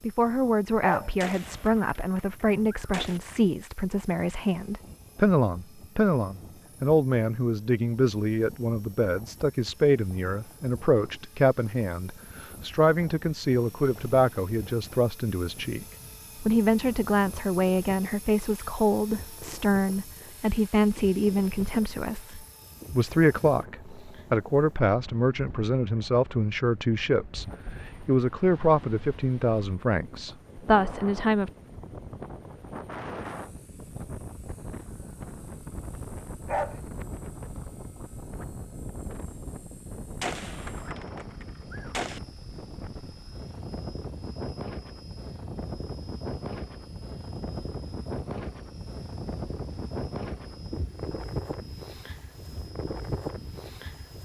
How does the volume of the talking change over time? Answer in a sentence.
The volume of the talking stays about the same.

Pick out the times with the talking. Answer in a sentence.
You can hear the talking from 0.0 to 31.5 s.